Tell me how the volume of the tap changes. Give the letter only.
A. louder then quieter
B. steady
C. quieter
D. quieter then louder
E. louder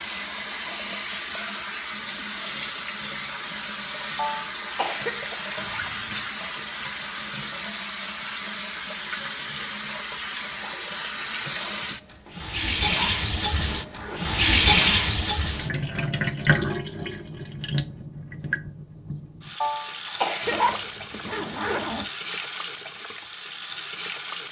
A.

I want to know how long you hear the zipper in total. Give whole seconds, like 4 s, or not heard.
4 s.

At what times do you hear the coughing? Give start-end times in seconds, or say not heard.
4.2-5.5, 19.6-20.9.